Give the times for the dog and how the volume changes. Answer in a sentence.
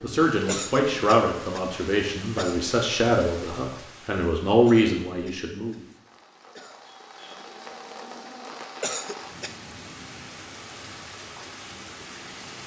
You can't hear the dog here.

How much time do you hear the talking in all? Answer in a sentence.
You can hear the talking for 6 seconds altogether.